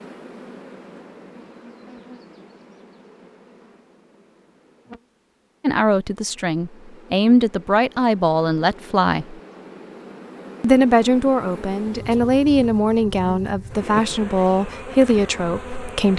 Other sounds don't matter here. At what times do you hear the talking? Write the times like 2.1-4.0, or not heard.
5.6-9.3, 10.6-16.1.